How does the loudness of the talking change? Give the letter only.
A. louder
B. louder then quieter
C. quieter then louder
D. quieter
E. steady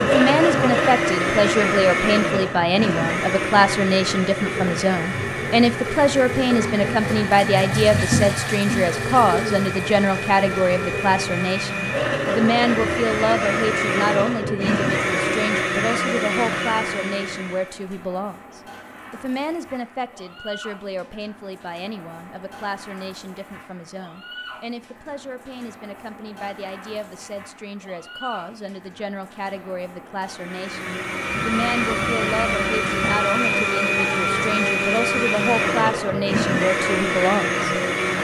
C.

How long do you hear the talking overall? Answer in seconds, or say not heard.
38 s.